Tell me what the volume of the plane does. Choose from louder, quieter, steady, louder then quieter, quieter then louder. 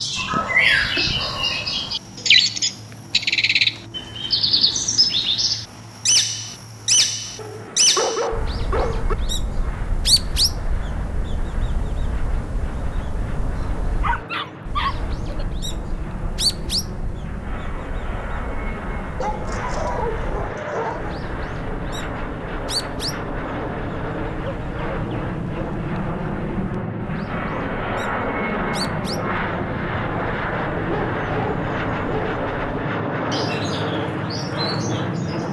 louder.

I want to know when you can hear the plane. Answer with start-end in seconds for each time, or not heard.
0.0-35.4.